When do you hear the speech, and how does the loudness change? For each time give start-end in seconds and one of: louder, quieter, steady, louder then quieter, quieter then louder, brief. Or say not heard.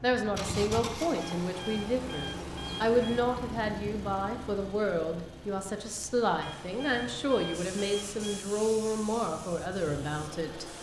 0.0-10.7 steady.